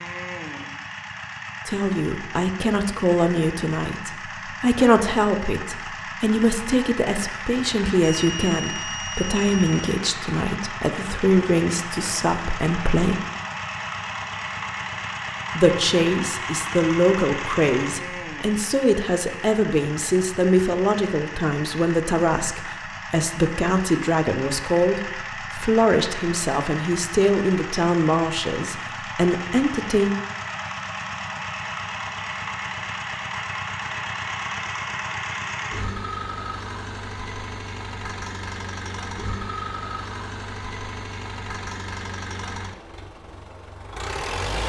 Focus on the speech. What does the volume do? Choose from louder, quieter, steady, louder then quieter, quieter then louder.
steady.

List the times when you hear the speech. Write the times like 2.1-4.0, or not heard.
1.6-13.2, 15.6-30.1.